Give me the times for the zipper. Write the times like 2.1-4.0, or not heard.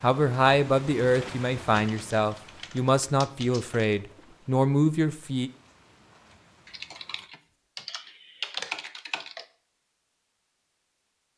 not heard.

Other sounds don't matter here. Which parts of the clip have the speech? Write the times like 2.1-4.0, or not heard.
0.0-5.5.